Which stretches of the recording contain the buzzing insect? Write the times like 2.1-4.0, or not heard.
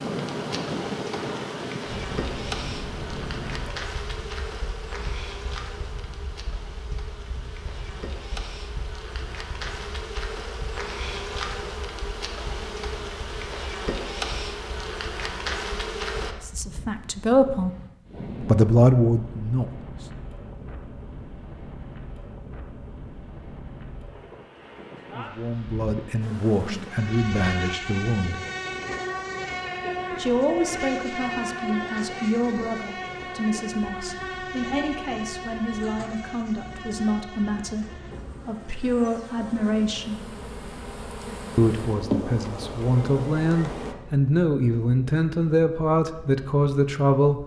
0.0-16.4, 26.2-44.0.